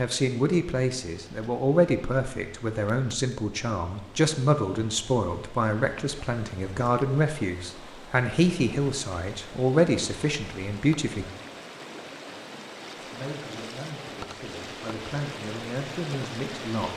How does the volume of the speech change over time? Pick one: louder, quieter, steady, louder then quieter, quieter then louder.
quieter.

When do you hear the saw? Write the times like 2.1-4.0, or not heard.
not heard.